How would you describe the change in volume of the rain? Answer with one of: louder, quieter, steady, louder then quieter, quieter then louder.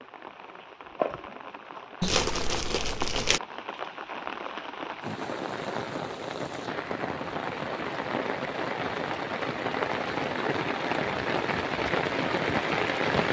louder.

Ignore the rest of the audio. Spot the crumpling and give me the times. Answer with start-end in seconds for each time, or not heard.
2.0-3.4.